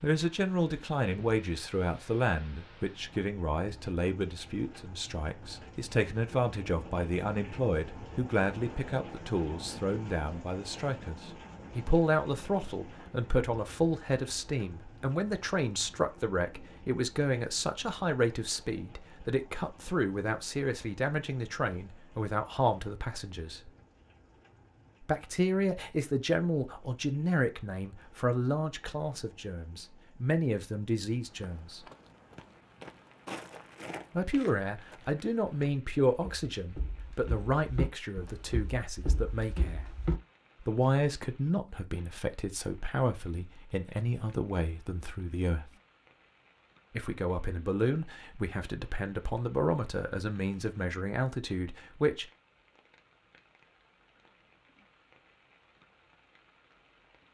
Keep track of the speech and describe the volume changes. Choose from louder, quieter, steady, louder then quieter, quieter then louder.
steady.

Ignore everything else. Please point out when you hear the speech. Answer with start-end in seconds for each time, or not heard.
0.0-23.7, 25.1-31.8, 34.1-39.9, 40.6-45.7, 47.0-52.2.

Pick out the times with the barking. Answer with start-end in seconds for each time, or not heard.
not heard.